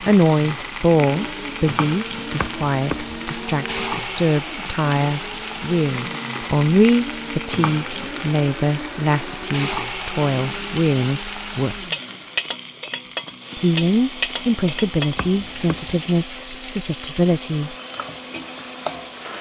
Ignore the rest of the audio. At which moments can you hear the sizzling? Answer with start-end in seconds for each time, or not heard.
0.0-19.3.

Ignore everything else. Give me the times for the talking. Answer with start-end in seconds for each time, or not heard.
0.0-11.8, 13.6-17.8.